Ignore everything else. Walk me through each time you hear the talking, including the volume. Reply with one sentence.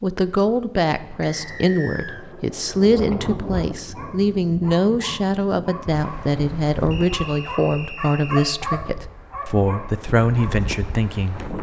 The talking can be heard from 0.0 to 11.5 s, at a steady volume.